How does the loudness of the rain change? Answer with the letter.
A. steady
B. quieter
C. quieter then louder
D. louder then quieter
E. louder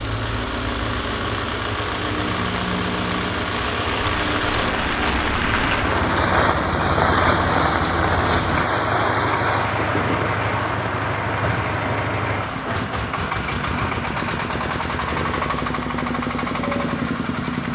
D.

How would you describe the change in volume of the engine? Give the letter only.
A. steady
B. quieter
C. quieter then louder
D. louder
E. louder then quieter
A.